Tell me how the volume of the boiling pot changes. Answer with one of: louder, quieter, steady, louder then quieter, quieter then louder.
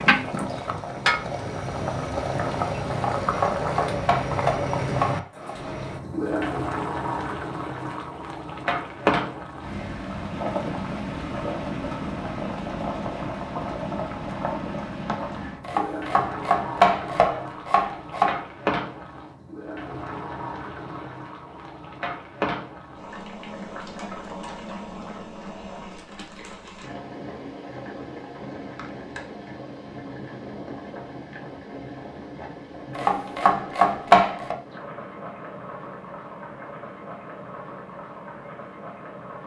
quieter.